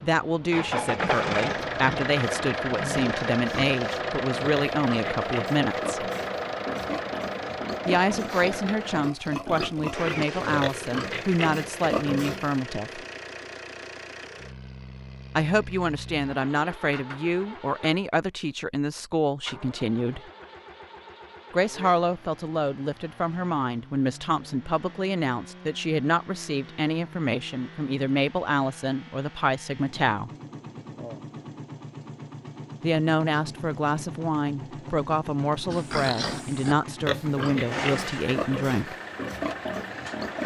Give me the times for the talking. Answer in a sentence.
The talking can be heard from 0.0 to 6.0 s, from 7.8 to 13.0 s, from 15.3 to 20.2 s, from 21.5 to 30.3 s and from 32.8 to 39.0 s.